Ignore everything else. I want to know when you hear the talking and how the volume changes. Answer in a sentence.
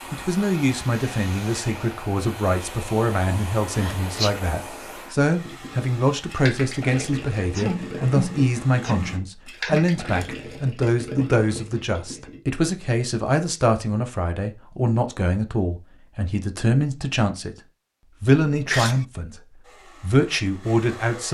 You can hear the talking from 0.1 to 17.6 s, at a steady volume; briefly from 18.2 to 19.4 s; and briefly from 20.0 to 21.2 s.